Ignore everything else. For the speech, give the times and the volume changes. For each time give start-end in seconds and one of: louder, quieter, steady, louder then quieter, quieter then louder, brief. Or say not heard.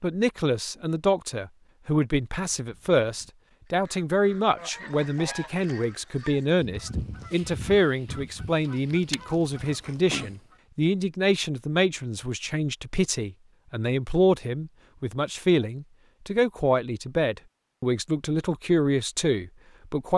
0.0-20.1 steady.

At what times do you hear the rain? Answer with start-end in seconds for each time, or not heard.
not heard.